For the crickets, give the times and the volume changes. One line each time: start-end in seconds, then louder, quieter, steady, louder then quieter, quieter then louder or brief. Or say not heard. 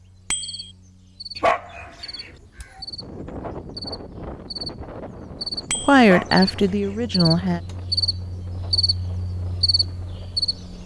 0.0-10.8 louder.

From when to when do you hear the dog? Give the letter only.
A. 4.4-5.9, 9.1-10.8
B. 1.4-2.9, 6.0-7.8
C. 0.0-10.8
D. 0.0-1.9
B.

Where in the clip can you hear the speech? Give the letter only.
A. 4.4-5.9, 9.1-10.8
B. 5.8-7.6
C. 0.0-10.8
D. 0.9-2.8
B.